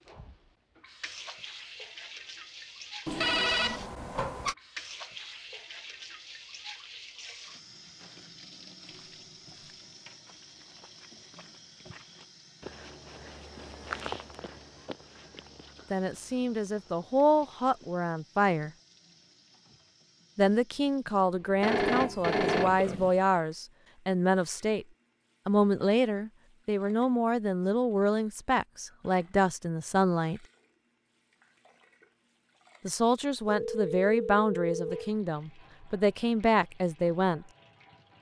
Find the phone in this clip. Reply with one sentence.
You can hear the phone from 3.0 to 4.5 s, from 21.6 to 23.1 s and from 33.5 to 35.1 s.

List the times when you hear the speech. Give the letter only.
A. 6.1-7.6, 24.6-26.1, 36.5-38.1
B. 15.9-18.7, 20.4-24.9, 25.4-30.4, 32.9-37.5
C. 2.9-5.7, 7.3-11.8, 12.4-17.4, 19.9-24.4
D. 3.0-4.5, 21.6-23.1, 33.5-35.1
B.